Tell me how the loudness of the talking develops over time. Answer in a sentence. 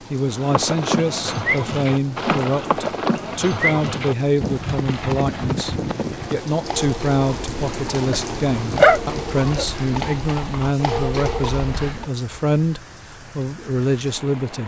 The loudness of the talking stays about the same.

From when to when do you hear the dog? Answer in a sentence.
The dog can be heard from 8.1 to 9.7 s.